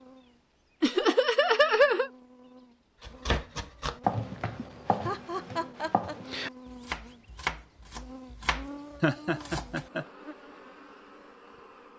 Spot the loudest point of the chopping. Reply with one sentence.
The volume of the chopping peaks at 4 seconds.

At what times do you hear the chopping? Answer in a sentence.
You can hear the chopping from 3.0 to 9.8 s.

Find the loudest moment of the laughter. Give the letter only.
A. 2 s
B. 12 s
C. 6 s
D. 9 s
A.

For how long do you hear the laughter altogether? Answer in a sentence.
You can hear the laughter for 4 seconds altogether.